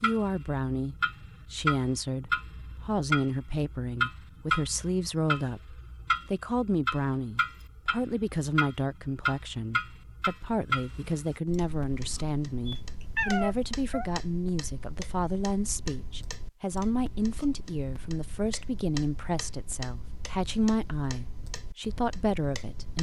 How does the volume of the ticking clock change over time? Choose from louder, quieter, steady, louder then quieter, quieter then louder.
quieter.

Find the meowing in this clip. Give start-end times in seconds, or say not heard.
12.7-14.1.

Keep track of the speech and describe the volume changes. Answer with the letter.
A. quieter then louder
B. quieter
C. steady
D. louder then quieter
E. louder
C.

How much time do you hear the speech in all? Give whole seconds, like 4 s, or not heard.
23 s.